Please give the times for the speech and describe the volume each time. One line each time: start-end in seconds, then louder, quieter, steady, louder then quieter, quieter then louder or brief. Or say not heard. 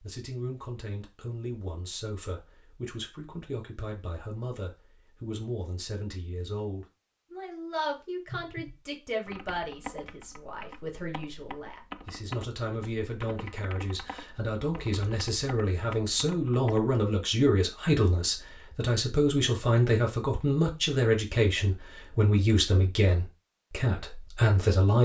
0.0-25.0 louder.